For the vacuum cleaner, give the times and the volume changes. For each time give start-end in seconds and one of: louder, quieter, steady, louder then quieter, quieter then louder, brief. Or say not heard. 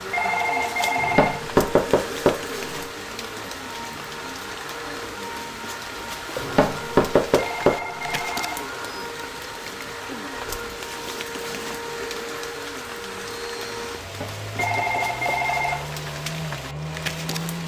0.0-17.6 steady.